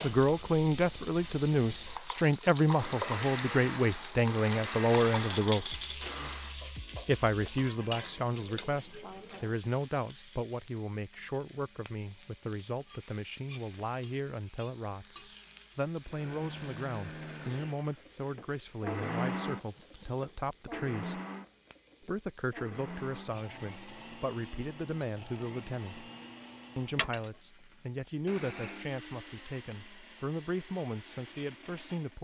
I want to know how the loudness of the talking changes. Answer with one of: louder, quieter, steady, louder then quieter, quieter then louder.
quieter.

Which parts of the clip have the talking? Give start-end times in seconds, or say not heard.
0.0-5.8, 7.0-21.2, 22.0-26.1, 26.8-32.1.